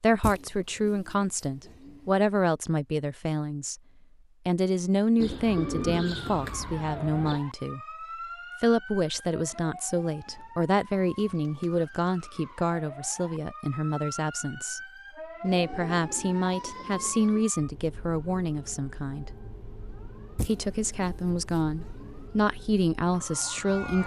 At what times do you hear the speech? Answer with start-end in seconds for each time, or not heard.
0.0-3.8, 4.5-7.8, 8.6-14.8, 15.4-19.3, 20.4-24.0.